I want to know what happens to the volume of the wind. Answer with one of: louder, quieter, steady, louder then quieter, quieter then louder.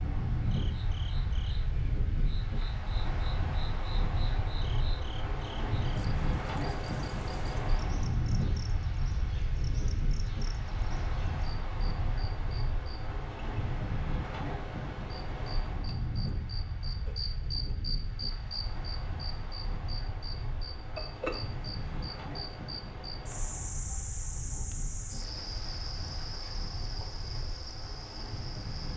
quieter.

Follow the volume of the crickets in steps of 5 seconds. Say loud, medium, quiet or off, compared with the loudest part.
medium, medium, medium, loud, loud, loud.